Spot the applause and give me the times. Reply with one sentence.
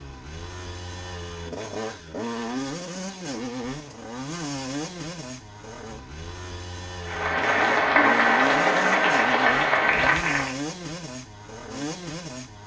The applause can be heard from 7.0 to 10.6 s.